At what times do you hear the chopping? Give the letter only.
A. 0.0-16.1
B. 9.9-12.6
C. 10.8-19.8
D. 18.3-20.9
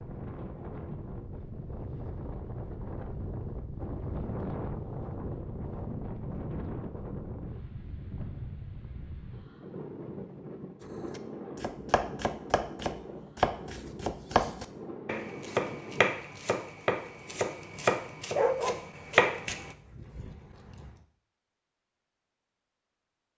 C.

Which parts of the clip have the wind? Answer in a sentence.
The wind can be heard from 0.0 to 16.1 s.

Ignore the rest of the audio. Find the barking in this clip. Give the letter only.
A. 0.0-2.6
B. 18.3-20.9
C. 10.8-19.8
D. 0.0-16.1
B.